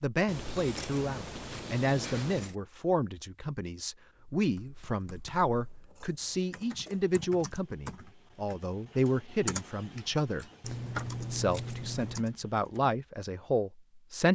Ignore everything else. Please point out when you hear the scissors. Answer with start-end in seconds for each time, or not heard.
0.2-2.5, 5.5-7.2, 10.6-12.3.